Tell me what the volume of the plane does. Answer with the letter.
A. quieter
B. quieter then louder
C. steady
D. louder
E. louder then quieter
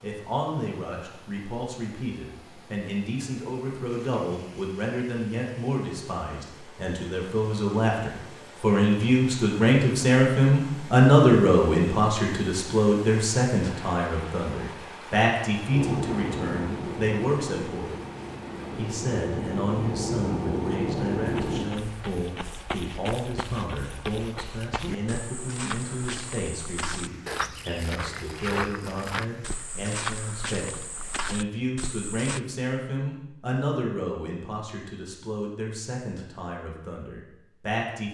B.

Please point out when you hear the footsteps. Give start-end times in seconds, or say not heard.
21.2-32.4.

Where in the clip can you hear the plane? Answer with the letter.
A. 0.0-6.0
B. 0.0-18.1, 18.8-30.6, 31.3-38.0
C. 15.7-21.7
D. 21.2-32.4
C.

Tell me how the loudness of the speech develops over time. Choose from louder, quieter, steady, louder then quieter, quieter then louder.
louder then quieter.